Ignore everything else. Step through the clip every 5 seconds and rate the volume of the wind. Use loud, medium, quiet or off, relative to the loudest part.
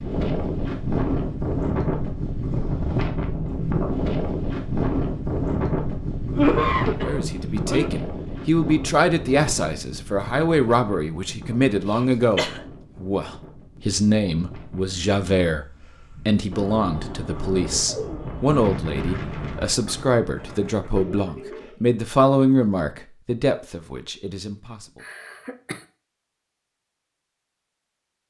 loud, loud, quiet, medium, off, off.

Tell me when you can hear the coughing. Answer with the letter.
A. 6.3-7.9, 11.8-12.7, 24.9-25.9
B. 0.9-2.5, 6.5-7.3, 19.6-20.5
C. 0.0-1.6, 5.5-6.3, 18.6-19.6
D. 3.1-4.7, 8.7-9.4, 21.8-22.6
A.